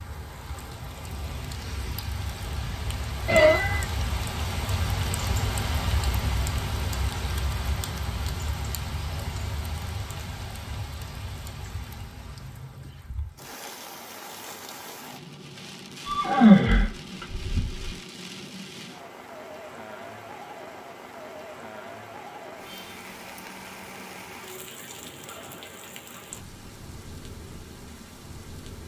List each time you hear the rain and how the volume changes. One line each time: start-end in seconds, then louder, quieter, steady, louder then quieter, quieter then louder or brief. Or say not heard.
0.0-28.8 quieter.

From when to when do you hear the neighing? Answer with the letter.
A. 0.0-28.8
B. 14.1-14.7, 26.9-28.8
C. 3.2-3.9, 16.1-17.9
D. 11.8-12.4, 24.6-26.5
C.